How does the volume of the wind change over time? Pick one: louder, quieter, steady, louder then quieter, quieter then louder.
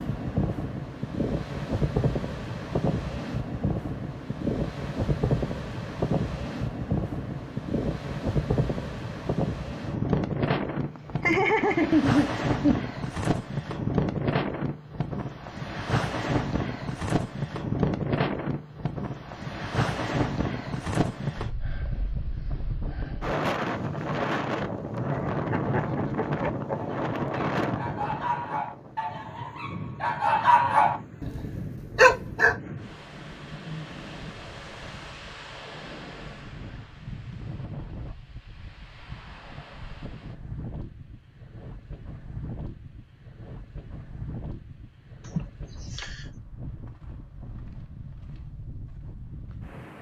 quieter.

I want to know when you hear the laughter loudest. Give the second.
12 s.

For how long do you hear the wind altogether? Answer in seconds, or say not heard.
50 s.